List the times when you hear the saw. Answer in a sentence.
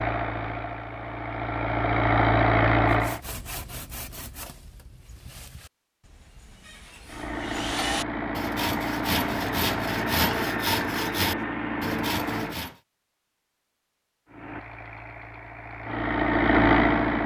The saw can be heard from 2.9 to 12.8 s.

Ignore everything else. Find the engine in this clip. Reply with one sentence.
The engine can be heard from 0.0 to 3.2 s, from 7.0 to 12.7 s and from 14.2 to 17.2 s.